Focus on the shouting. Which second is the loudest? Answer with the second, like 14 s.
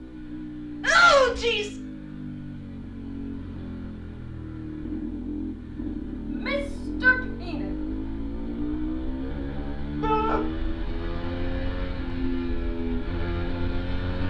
1 s.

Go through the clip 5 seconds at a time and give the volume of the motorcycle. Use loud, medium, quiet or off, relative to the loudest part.
medium, loud, loud.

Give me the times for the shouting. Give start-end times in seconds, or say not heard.
0.8-1.8, 6.3-7.7, 10.0-10.4.